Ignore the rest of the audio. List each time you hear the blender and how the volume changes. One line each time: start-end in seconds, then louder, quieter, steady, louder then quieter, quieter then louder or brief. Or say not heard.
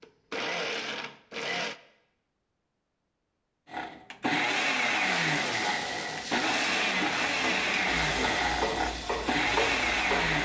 0.0-1.8 brief
3.6-10.3 steady.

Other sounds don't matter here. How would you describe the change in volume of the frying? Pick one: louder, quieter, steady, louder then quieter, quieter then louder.
louder.